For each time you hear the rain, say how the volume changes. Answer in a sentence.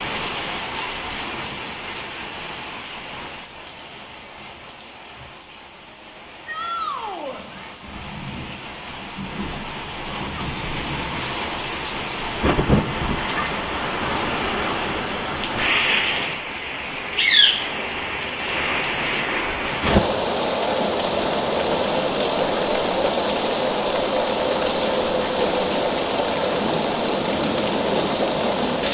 You can hear the rain from 0.0 to 28.8 s, getting louder.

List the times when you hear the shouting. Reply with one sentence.
You can hear the shouting from 6.5 to 7.4 s.